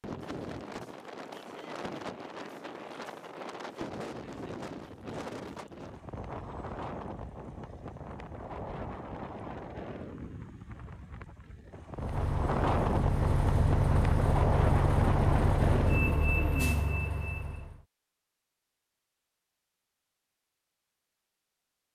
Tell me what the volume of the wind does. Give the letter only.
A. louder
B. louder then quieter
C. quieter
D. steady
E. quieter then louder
A.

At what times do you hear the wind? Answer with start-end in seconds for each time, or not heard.
0.0-16.3.